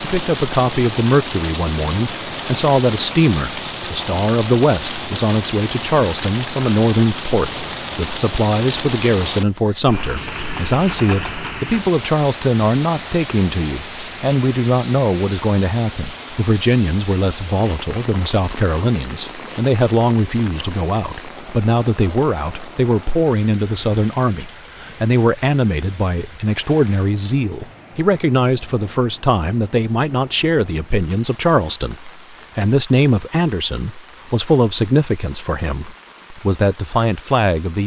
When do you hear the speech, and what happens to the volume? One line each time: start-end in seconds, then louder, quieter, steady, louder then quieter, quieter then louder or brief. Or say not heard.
0.0-37.8 steady.